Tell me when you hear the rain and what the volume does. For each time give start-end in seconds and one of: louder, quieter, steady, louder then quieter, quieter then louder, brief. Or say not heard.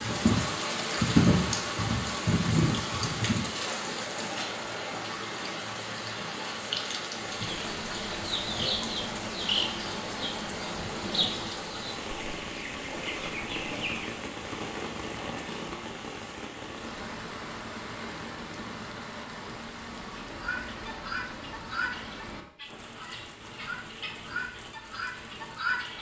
0.0-25.9 quieter.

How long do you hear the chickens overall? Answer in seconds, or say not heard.
12 s.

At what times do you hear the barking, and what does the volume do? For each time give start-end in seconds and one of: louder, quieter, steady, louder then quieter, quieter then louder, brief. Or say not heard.
not heard.